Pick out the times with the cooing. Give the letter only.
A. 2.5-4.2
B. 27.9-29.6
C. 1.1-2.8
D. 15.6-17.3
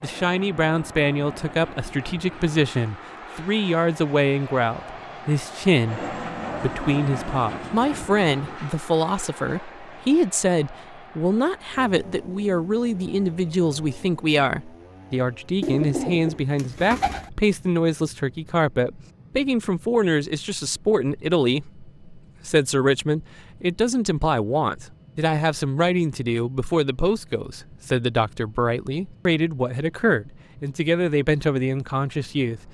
D.